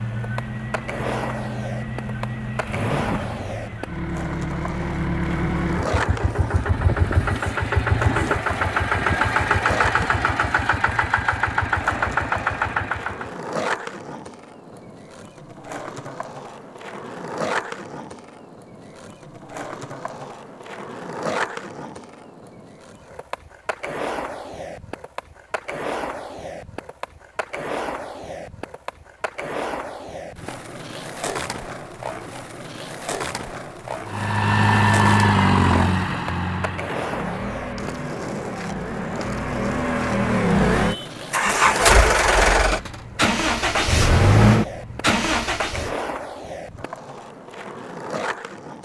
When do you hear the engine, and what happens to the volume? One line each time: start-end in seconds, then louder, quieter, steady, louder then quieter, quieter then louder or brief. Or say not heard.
0.0-13.4 louder
34.0-46.0 quieter then louder.